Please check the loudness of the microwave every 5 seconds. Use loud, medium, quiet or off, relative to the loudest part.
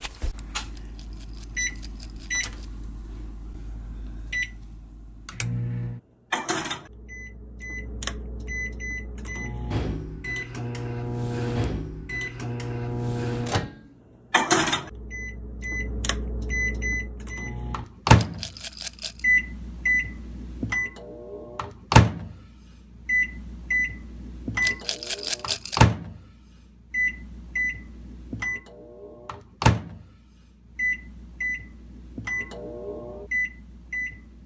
medium, medium, loud, loud, loud, loud, medium.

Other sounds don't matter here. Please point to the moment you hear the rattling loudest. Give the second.
25 s.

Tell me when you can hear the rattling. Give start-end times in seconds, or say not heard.
0.8-2.6, 18.1-19.2, 24.6-25.8.